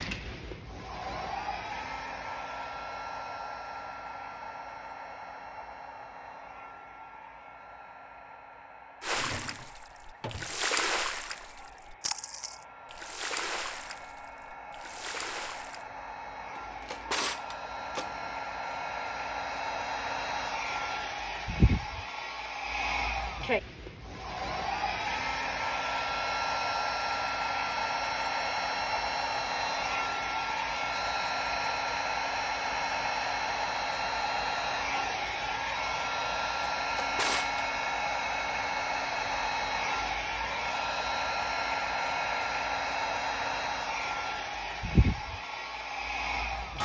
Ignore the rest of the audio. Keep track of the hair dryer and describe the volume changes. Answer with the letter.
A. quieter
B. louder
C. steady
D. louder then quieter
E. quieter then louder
B.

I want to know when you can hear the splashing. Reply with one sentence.
The splashing can be heard from 9.0 to 15.8 s.